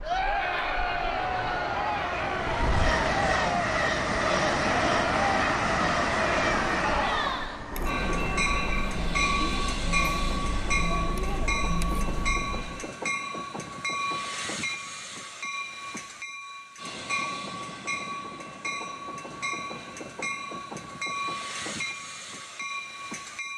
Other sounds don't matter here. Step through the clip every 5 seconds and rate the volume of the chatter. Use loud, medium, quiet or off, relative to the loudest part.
loud, loud, medium, off, off.